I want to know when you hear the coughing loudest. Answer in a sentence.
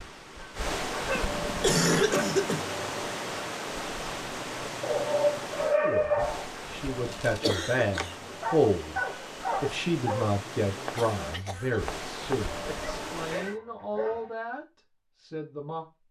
The volume of the coughing peaks at 2 seconds.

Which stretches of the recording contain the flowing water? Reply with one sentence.
You can hear the flowing water from 0.0 to 13.6 s.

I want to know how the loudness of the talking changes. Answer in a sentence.
The volume of the talking goes up, then down.